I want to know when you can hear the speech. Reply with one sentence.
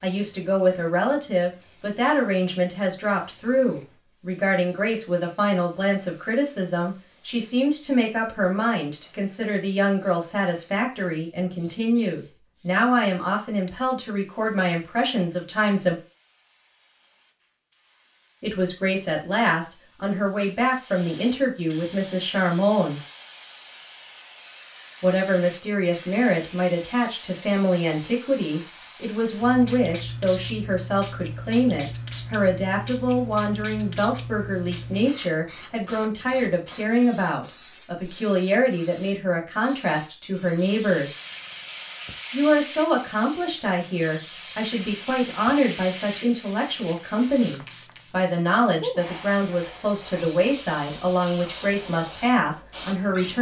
You can hear the speech from 0.0 to 15.9 s, from 18.4 to 23.0 s, from 25.0 to 41.1 s and from 42.3 to 53.3 s.